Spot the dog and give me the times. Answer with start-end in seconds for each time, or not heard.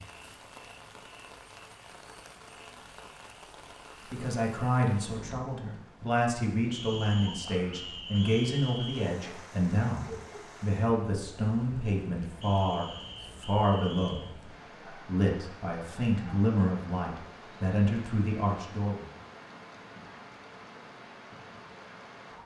9.2-10.7.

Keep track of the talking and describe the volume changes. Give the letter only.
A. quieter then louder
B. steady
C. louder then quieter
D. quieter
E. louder
B.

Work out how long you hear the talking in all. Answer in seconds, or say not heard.
15 s.